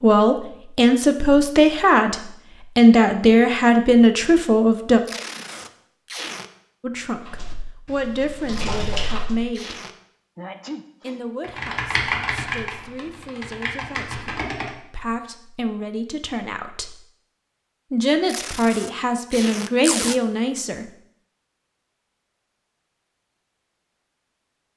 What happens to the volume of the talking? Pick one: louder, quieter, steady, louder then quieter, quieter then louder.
quieter then louder.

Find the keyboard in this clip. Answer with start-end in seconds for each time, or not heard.
7.2-9.4, 11.4-14.8.